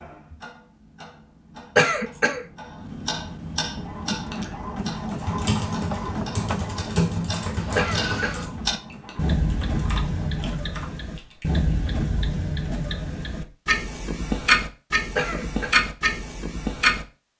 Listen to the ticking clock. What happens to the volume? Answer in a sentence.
The volume of the ticking clock goes up.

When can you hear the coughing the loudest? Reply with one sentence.
The loudest moment of the coughing is at 2 seconds.